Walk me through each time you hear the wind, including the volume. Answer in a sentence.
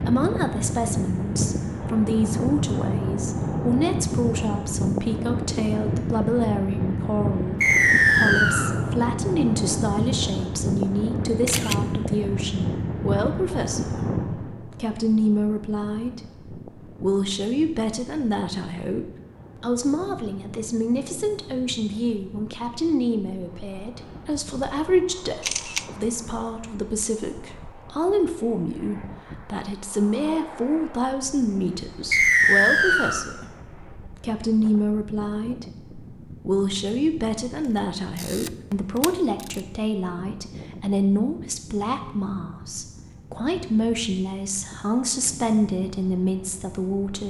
The wind can be heard from 0.0 to 47.2 s, getting quieter.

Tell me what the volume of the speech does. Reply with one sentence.
The volume of the speech stays about the same.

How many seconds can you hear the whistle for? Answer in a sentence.
You can hear the whistle for 2 seconds altogether.